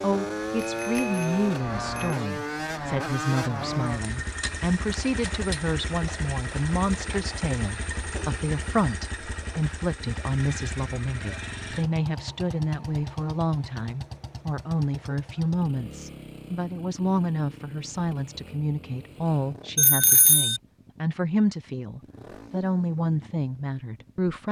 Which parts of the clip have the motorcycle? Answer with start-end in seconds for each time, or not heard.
0.0-24.4.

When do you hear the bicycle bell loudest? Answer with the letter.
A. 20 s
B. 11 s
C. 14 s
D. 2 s
A.